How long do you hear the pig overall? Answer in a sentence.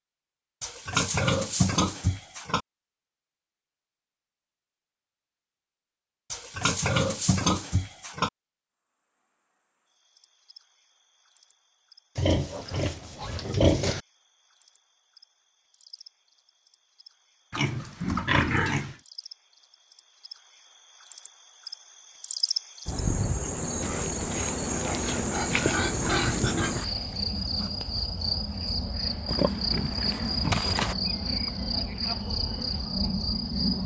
The pig can be heard for 12 seconds in total.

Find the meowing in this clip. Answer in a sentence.
You can't hear the meowing here.